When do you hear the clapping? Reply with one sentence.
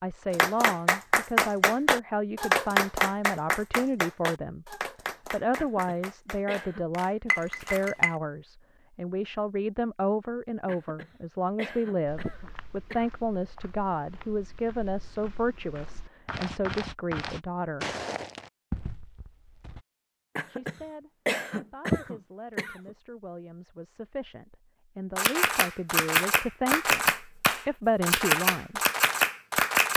The clapping can be heard from 0.3 to 7.9 s and from 25.1 to 29.9 s.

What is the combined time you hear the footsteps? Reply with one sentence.
The footsteps can be heard for 8 seconds in total.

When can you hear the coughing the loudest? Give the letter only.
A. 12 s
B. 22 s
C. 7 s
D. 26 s
B.